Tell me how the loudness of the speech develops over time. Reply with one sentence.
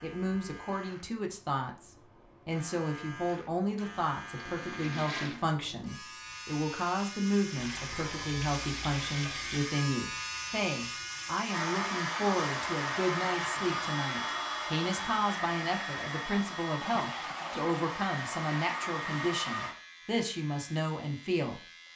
The volume of the speech stays about the same.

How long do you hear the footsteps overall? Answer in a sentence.
You can't hear the footsteps here.